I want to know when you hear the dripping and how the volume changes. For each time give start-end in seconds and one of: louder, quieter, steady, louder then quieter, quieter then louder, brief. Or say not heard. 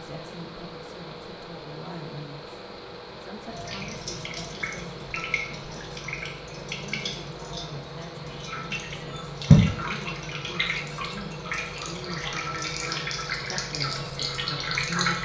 3.5-15.1 louder then quieter.